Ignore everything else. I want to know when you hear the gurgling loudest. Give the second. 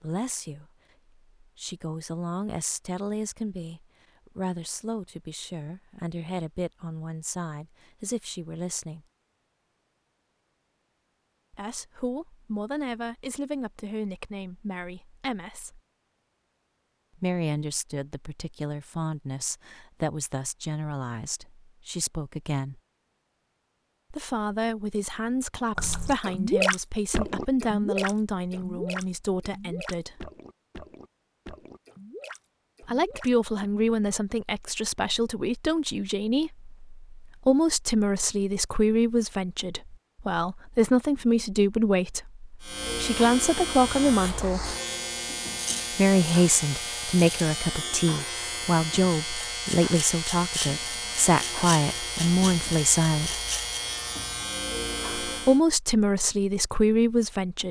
27 s.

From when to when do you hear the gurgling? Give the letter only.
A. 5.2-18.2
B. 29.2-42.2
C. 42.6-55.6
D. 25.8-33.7
D.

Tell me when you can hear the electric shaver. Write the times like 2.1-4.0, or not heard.
42.6-55.6.